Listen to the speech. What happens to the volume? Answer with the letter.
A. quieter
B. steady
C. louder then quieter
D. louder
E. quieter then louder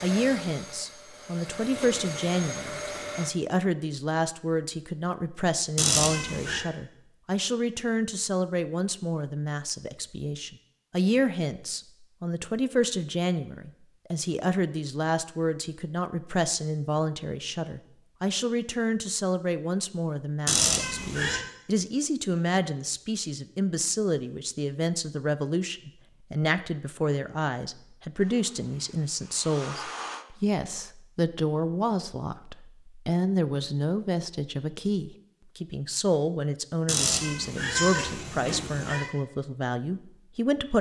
B.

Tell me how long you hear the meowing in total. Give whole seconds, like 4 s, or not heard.
4 s.